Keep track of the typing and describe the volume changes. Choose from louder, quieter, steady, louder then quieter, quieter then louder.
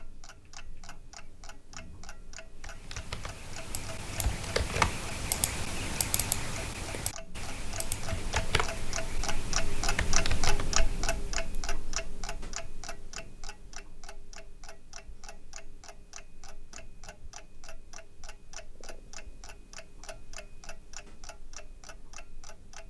louder then quieter.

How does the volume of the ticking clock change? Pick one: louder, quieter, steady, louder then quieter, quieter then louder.
louder then quieter.